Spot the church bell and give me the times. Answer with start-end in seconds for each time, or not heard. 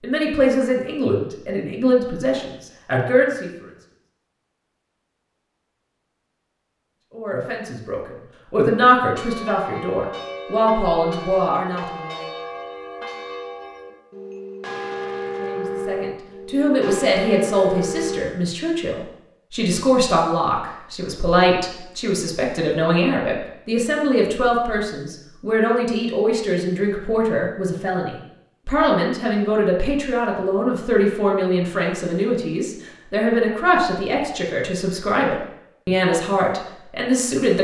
9.1-18.2.